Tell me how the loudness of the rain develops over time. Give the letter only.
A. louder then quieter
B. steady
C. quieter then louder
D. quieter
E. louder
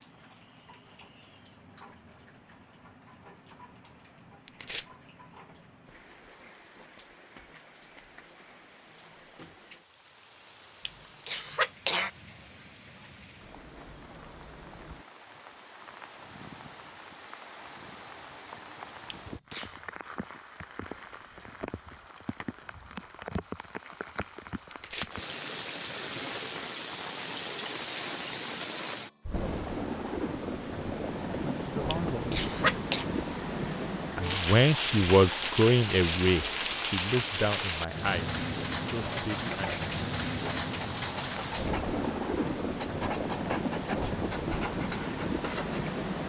E.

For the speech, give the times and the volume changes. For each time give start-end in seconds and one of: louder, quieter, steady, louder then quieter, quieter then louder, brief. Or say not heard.
31.3-32.4 brief
34.1-39.7 quieter.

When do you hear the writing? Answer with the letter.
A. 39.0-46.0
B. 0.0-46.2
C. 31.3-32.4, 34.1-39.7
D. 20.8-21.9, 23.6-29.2
A.